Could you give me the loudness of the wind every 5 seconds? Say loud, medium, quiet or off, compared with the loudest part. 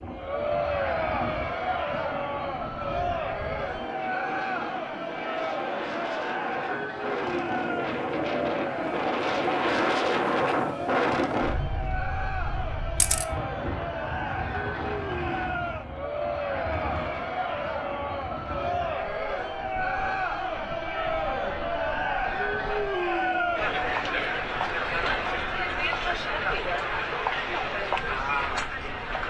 medium, loud, loud, medium, quiet, quiet.